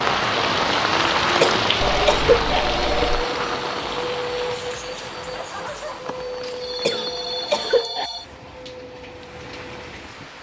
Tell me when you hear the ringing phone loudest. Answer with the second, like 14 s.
3 s.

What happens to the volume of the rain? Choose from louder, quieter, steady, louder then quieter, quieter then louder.
quieter.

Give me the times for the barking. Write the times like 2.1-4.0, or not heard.
not heard.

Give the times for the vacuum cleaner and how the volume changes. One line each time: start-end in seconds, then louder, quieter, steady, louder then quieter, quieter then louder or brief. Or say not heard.
0.2-10.3 quieter.